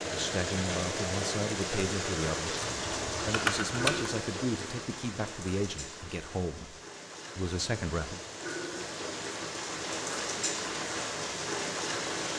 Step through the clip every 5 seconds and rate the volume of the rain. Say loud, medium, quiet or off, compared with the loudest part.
loud, medium, loud.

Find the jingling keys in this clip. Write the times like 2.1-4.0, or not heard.
2.6-4.1.